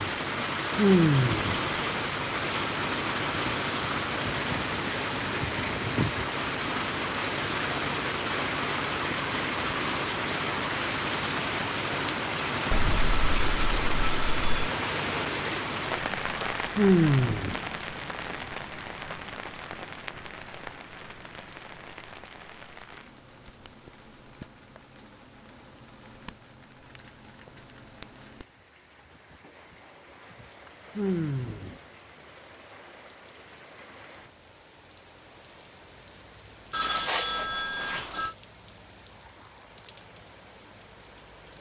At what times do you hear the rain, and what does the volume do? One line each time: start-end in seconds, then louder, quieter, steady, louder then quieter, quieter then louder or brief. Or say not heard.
0.0-41.5 quieter.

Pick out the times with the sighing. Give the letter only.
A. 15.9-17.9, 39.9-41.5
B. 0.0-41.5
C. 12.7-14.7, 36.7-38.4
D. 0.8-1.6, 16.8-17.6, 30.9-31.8
D.